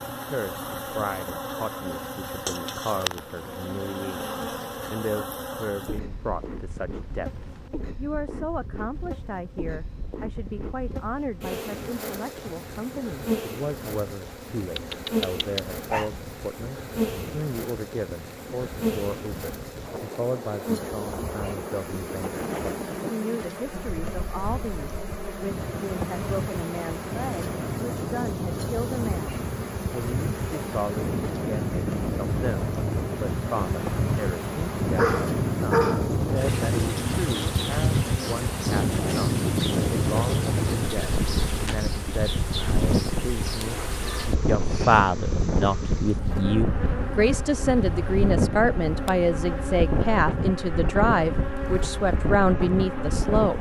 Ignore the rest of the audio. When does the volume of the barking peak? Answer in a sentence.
The volume of the barking peaks at 36 seconds.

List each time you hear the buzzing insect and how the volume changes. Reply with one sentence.
You can hear the buzzing insect from 0.0 to 53.5 s, at a steady volume.